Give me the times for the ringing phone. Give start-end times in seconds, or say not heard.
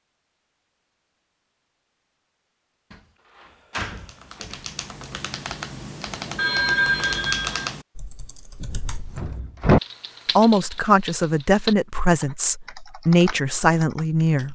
6.3-7.7.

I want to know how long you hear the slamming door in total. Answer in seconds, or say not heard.
3 s.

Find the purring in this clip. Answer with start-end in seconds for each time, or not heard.
not heard.